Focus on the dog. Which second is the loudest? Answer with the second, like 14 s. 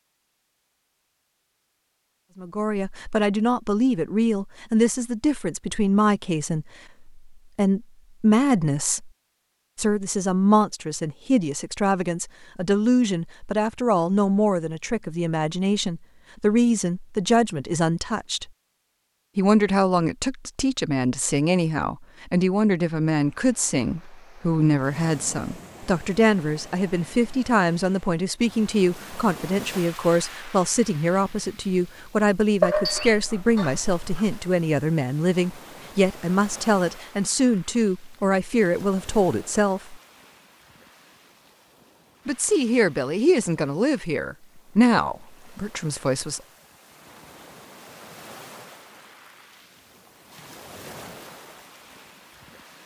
33 s.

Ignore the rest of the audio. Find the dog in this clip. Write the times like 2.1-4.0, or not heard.
32.6-34.5.